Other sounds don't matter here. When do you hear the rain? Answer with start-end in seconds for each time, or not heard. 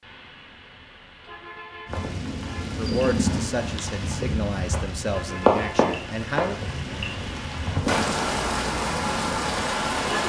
1.9-10.2.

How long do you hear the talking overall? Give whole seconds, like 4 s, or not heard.
4 s.